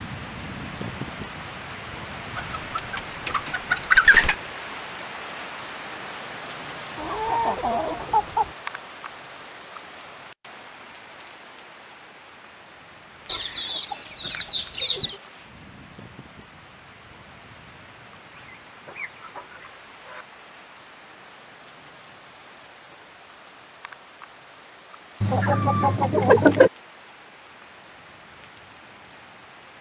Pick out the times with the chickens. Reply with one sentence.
You can hear the chickens from 2.4 to 4.3 s, from 7.0 to 8.6 s, from 13.2 to 15.2 s, from 18.3 to 20.2 s and from 25.2 to 26.7 s.